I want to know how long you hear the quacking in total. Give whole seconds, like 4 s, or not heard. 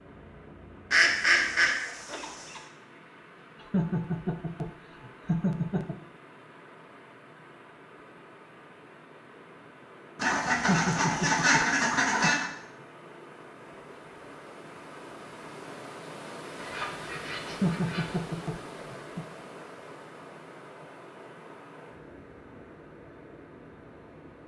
6 s.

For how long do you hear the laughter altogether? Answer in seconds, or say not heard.
6 s.